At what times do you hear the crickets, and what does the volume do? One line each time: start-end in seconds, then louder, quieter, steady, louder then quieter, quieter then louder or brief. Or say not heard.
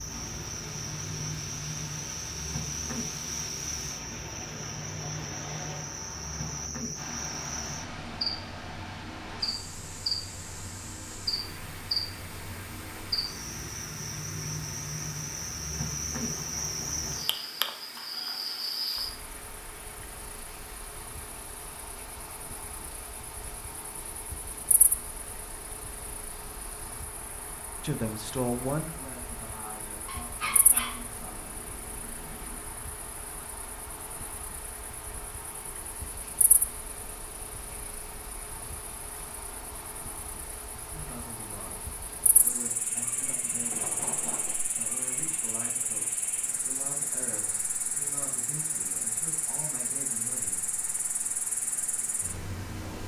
0.0-53.0 quieter then louder.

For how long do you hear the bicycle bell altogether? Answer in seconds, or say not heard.
2 s.